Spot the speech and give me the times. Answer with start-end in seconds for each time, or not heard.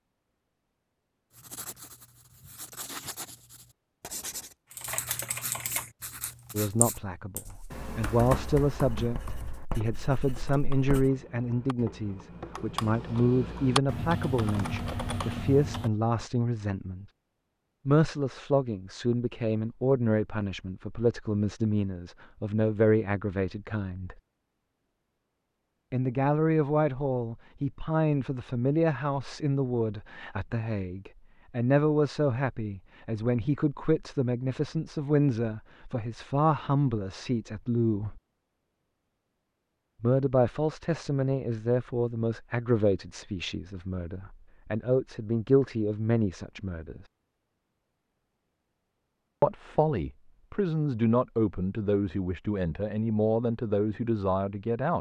6.5-17.1, 17.9-24.1, 25.9-38.2, 40.0-47.0, 49.4-54.9.